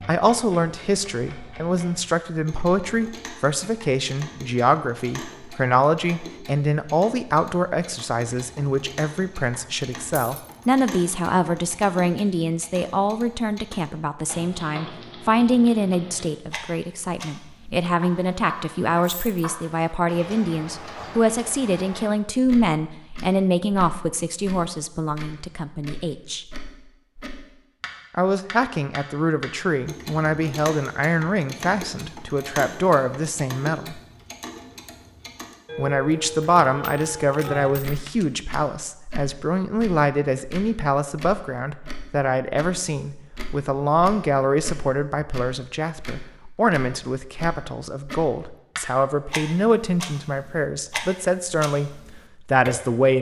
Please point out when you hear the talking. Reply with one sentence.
You can hear the talking from 0.0 to 26.4 s, from 28.1 to 34.0 s and from 35.8 to 53.1 s.